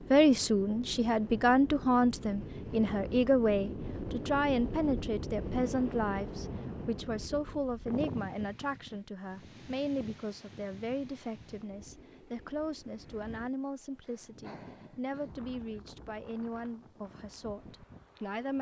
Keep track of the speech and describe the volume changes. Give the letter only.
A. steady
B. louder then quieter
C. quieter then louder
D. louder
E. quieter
E.